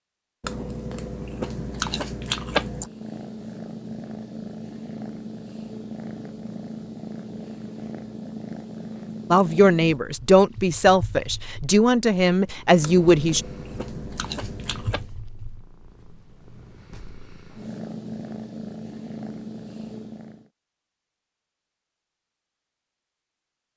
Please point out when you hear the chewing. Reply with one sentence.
You can hear the chewing from 0.4 to 2.9 s and from 12.8 to 15.1 s.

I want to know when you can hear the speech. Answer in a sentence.
You can hear the speech from 9.3 to 13.4 s.